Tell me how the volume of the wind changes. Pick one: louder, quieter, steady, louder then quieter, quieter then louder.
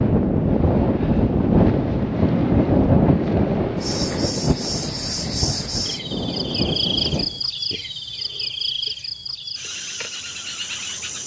quieter.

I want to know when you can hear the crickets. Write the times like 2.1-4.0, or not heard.
3.8-11.2.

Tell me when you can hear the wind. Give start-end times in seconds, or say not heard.
0.0-7.4.